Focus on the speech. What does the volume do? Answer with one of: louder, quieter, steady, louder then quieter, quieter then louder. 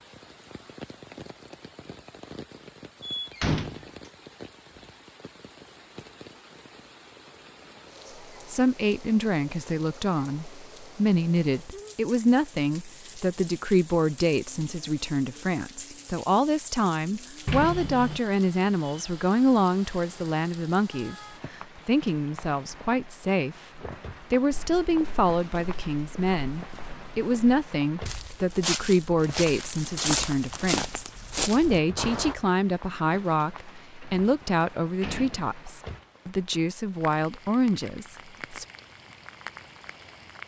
steady.